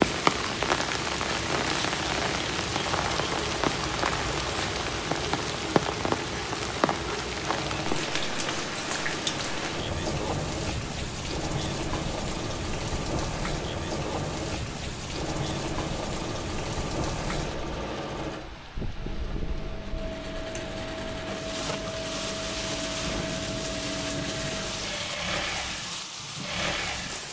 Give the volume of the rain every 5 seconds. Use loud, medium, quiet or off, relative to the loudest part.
loud, loud, medium, medium, medium, medium.